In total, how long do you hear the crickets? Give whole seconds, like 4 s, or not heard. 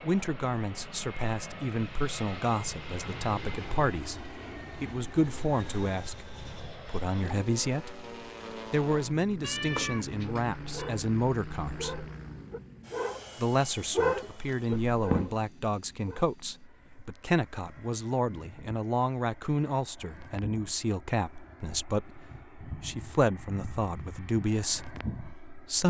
not heard.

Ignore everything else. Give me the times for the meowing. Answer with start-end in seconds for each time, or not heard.
9.4-10.9, 14.9-15.3.